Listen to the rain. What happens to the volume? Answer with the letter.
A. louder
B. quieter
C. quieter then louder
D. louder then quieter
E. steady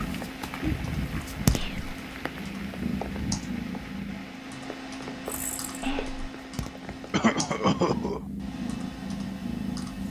B.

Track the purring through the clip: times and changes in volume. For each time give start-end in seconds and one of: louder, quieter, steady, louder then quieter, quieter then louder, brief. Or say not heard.
0.0-10.0 quieter then louder.